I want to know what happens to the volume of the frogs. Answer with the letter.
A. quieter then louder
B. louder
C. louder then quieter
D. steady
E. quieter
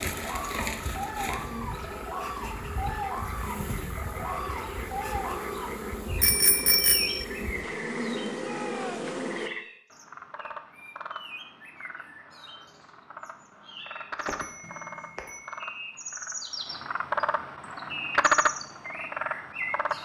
B.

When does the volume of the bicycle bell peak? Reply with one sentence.
The loudest moment of the bicycle bell is at 7 seconds.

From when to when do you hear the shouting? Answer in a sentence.
You can hear the shouting from 8.3 to 9.1 s.